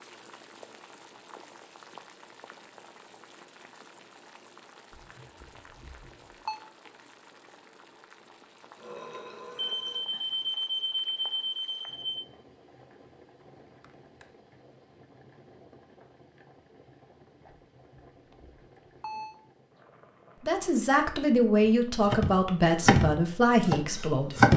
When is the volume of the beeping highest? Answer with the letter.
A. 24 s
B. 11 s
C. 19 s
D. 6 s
B.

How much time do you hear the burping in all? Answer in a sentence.
You can hear the burping for 2 seconds altogether.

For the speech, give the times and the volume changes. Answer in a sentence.
The speech can be heard from 20.4 to 24.5 s, at a steady volume.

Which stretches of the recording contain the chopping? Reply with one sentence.
The chopping can be heard from 22.1 to 24.5 s.